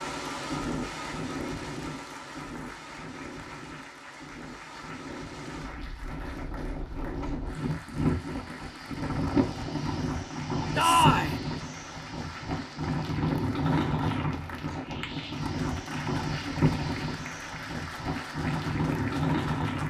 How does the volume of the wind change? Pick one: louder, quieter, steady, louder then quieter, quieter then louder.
louder.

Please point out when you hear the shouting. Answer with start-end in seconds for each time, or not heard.
10.8-11.3.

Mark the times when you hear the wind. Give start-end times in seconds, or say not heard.
0.0-19.8.